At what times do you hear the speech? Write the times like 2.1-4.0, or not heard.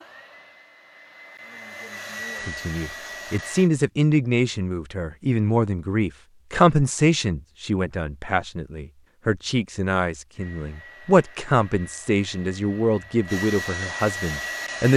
2.5-14.9.